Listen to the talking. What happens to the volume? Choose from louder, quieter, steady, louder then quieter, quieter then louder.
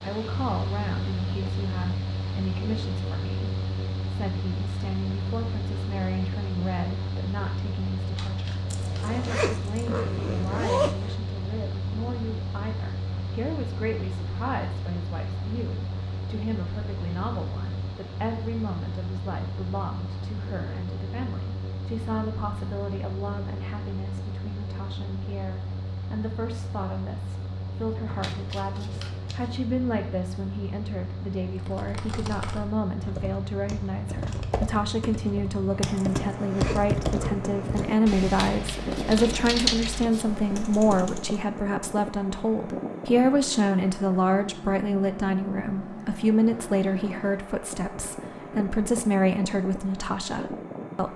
louder.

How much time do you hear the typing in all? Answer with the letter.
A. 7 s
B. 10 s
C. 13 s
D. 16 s
B.